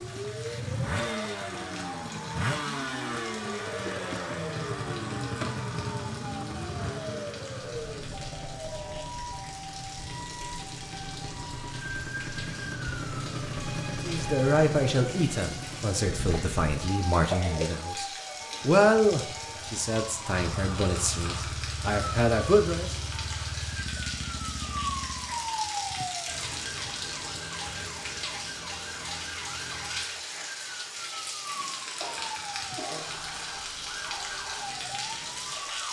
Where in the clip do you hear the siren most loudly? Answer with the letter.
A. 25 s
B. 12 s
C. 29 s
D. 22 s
A.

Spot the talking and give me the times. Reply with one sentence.
You can hear the talking from 14.1 to 22.9 s.